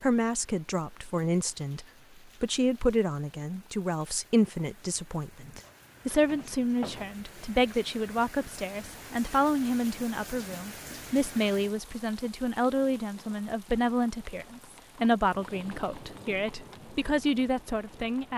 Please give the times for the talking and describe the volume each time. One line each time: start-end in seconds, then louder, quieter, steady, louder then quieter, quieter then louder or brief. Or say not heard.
0.0-18.3 steady.